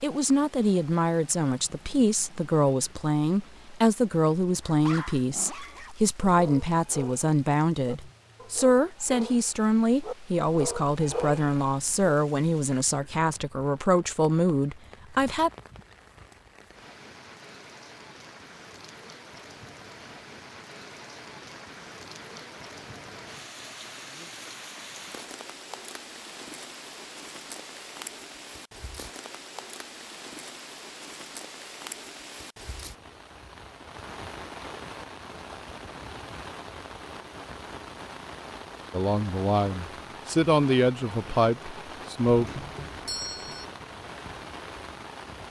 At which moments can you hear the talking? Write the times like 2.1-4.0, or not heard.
0.0-15.5, 38.9-42.5.